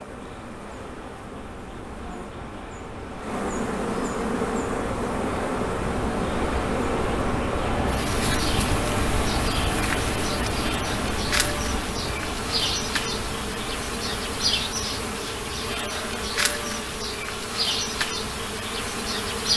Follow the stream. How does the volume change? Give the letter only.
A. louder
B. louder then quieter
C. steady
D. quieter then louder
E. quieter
B.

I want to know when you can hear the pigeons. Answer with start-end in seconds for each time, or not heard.
not heard.